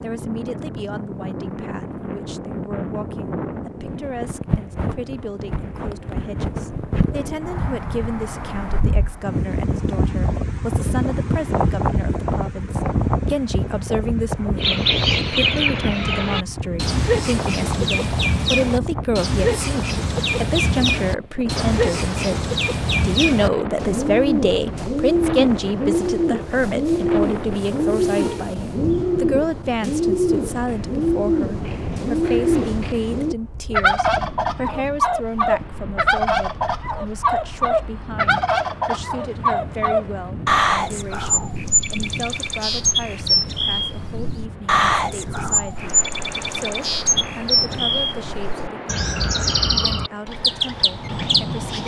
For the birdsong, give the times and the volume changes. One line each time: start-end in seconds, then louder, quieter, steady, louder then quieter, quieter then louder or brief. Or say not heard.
14.6-51.8 steady.